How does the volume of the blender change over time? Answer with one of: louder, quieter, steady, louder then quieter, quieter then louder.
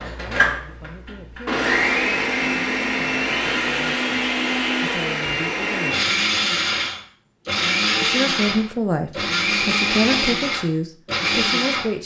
steady.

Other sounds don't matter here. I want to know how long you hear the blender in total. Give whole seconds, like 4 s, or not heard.
12 s.